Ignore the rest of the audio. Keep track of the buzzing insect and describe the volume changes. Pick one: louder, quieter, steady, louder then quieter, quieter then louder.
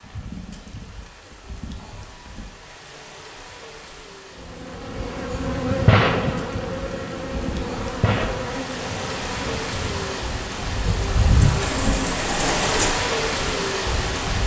quieter.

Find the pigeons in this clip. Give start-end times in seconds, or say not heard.
11.4-12.9.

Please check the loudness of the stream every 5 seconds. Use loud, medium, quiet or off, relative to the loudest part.
quiet, medium, loud.